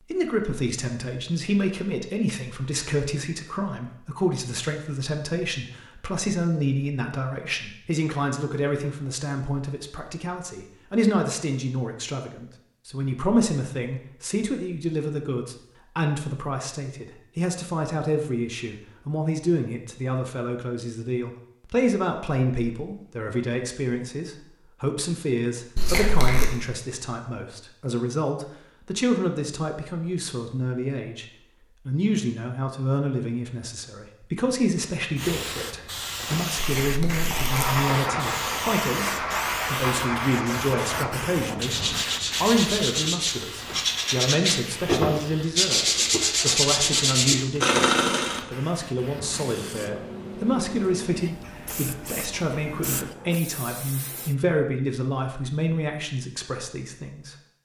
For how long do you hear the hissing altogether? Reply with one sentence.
The hissing can be heard for 19 seconds in total.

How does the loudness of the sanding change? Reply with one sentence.
The volume of the sanding goes up.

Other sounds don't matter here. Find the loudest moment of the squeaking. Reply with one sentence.
The volume of the squeaking peaks at 26 seconds.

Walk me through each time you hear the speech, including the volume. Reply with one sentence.
The speech can be heard from 0.0 to 31.2 s, at a steady volume; from 31.9 to 41.8 s, at a steady volume; and from 42.4 to 57.4 s, at a steady volume.